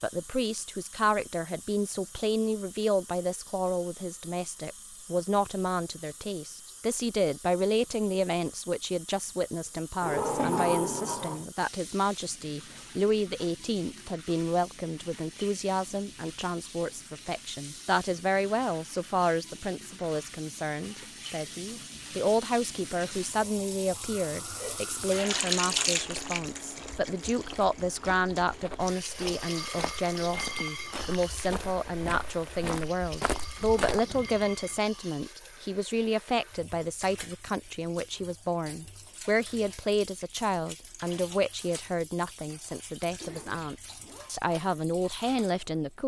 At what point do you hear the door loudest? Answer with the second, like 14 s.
11 s.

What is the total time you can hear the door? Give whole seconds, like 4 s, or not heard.
3 s.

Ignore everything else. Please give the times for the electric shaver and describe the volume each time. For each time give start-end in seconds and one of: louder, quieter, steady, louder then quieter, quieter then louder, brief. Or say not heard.
not heard.